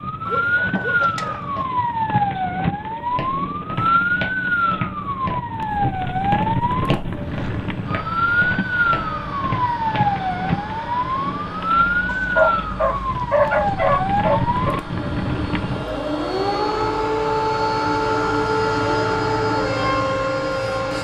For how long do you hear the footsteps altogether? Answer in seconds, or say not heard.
7 s.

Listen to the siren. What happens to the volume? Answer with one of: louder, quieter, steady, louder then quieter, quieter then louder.
steady.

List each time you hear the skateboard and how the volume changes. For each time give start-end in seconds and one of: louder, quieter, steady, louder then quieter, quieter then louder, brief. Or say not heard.
not heard.